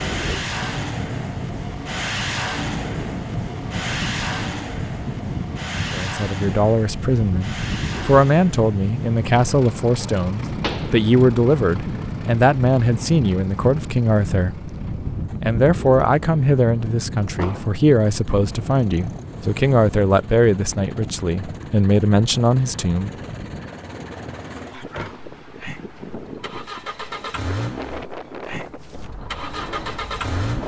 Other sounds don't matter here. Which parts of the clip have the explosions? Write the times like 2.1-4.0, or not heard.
10.6-11.0, 17.4-17.8.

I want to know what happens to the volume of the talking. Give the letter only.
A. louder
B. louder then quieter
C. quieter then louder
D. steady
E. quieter
D.